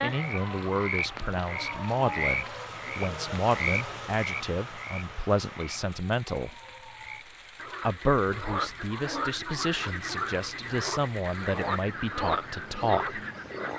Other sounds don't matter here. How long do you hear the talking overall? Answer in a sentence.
You can hear the talking for 12 seconds altogether.